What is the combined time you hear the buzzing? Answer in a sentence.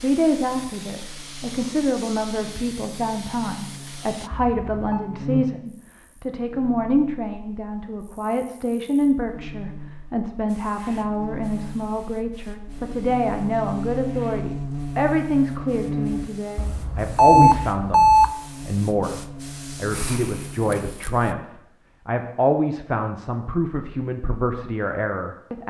You can hear the buzzing for 21 seconds altogether.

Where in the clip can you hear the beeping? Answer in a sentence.
You can hear the beeping from 4.3 to 5.0 s and from 16.6 to 18.3 s.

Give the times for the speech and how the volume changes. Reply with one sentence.
The speech can be heard from 0.0 to 25.6 s, at a steady volume.